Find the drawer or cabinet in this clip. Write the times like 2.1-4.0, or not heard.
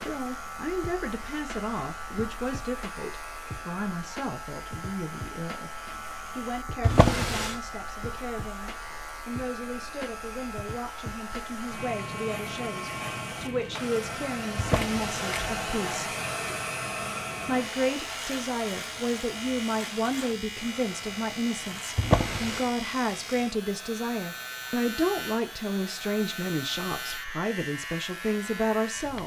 6.8-7.5, 14.6-15.6, 21.9-22.7.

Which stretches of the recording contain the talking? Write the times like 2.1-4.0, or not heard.
0.0-5.7, 6.3-16.1, 17.4-29.2.